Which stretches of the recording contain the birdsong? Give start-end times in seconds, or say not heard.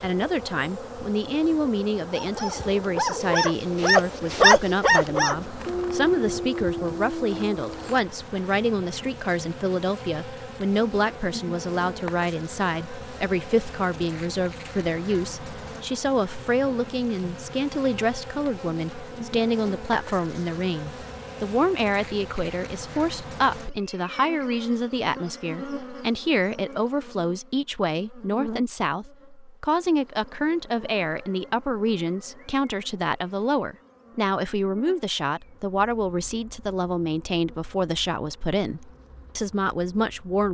not heard.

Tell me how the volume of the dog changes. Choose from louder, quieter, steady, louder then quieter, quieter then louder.
louder then quieter.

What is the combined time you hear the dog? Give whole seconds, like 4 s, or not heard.
6 s.